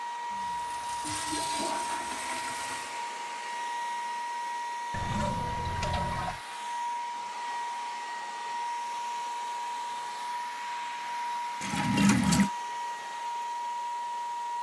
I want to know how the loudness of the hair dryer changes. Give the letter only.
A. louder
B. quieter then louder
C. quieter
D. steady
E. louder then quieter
D.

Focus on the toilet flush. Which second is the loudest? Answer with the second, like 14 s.
12 s.